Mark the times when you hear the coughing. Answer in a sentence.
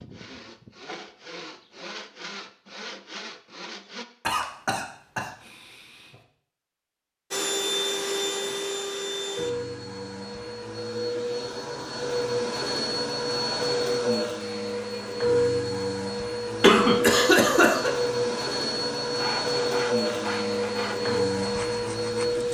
You can hear the coughing from 4.2 to 5.8 s and from 16.6 to 17.9 s.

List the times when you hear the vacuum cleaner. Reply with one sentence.
The vacuum cleaner can be heard from 7.3 to 22.4 s.